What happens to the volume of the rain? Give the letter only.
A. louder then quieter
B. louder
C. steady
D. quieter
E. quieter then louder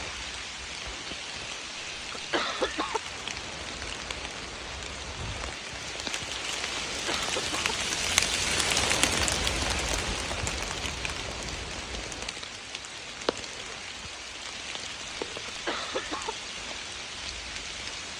A.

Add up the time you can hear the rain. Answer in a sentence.
You can hear the rain for 18 seconds altogether.